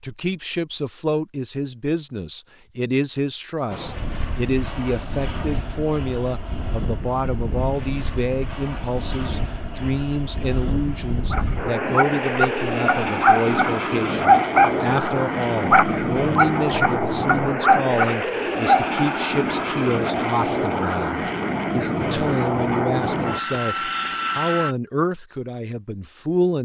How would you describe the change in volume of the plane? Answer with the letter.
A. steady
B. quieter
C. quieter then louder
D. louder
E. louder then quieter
D.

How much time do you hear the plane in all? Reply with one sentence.
The plane can be heard for 21 seconds in total.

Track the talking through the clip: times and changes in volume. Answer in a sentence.
You can hear the talking from 0.0 to 26.6 s, at a steady volume.